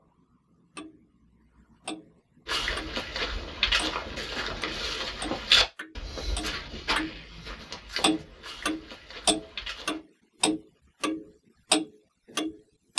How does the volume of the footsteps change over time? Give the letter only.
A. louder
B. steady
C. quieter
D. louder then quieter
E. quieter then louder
C.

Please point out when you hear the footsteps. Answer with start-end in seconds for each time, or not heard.
2.5-10.0.